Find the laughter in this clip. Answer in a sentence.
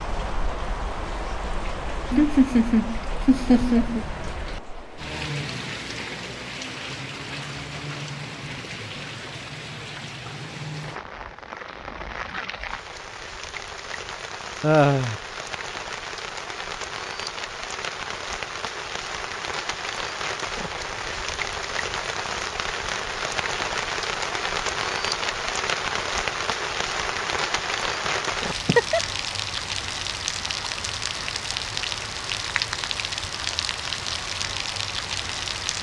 You can hear the laughter from 2.1 to 4.0 s, from 14.6 to 15.2 s and from 28.1 to 29.0 s.